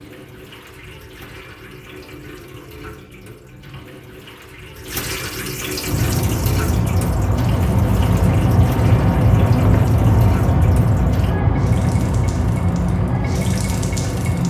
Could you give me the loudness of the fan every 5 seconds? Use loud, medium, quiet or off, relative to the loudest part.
off, loud, loud.